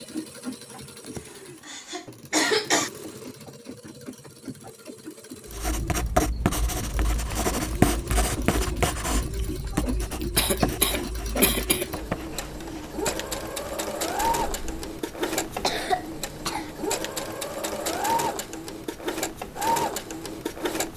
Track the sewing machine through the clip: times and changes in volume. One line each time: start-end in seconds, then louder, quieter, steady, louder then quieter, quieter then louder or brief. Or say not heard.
0.0-20.9 louder.